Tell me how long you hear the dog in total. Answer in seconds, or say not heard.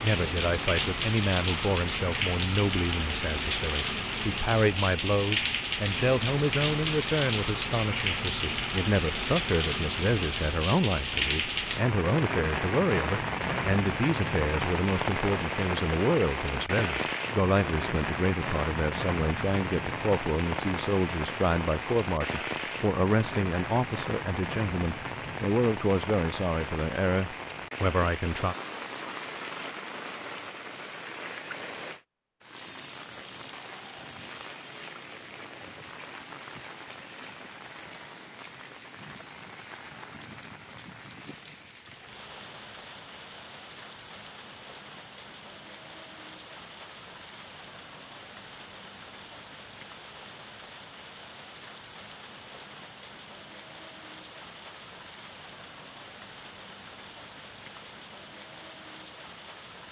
not heard.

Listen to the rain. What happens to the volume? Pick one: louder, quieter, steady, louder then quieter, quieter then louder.
quieter.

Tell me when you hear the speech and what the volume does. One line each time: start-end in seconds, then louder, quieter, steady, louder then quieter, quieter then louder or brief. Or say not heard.
0.0-28.6 steady.